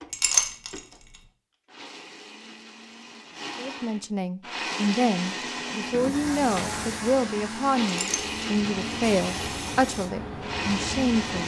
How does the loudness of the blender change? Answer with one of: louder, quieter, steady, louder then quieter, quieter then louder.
louder.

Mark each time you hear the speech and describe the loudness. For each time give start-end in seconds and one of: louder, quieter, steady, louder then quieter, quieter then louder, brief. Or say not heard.
3.5-11.4 steady.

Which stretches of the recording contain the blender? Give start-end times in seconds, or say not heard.
0.0-11.4.